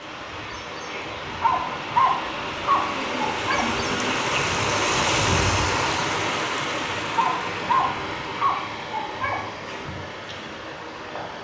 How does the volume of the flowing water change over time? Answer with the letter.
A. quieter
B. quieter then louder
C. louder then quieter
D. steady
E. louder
C.